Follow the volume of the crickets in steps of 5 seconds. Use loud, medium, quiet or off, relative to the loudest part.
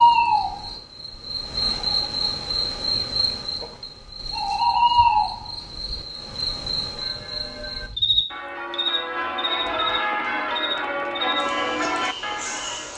loud, loud, medium.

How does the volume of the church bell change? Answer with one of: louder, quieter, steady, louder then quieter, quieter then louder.
louder.